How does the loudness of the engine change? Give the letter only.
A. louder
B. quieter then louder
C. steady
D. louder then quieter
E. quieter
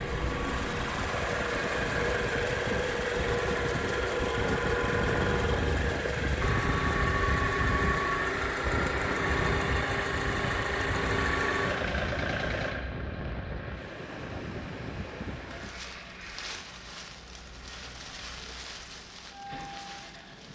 E.